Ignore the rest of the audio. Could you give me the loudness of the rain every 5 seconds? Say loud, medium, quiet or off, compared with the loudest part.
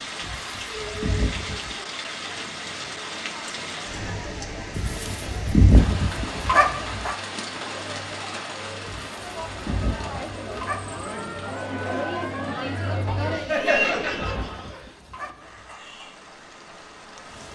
loud, loud, medium, medium.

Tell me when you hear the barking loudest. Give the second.
6 s.